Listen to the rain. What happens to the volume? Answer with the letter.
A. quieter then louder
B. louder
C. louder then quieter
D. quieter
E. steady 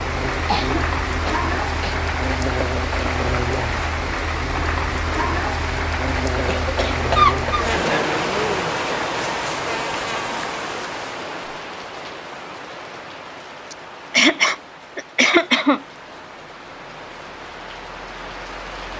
D.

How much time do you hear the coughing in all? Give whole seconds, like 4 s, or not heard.
5 s.